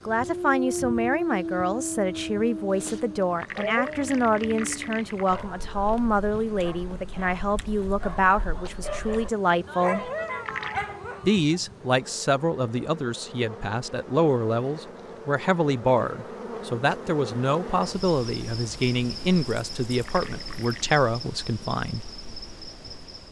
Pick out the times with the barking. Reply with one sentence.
You can hear the barking from 0.2 to 11.6 s.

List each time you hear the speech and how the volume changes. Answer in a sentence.
You can hear the speech from 0.1 to 10.1 s, at a steady volume; and from 11.2 to 22.1 s, at a steady volume.